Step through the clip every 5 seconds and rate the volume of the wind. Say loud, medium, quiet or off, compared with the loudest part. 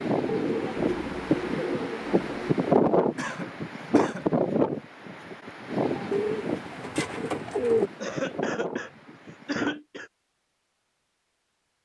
loud, medium, off.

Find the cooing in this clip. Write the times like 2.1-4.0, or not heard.
0.2-2.5, 6.1-7.9.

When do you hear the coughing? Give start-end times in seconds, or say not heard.
3.1-4.3, 8.0-10.1.